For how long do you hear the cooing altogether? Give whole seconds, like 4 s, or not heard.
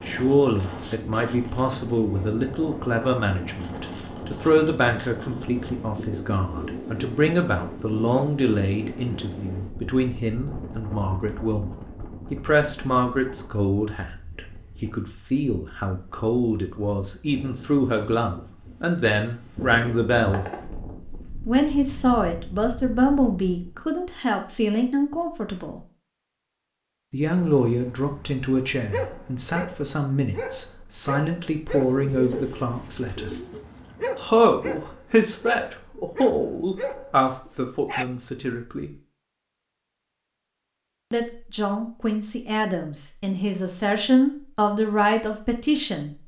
2 s.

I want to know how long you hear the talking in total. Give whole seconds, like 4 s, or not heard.
41 s.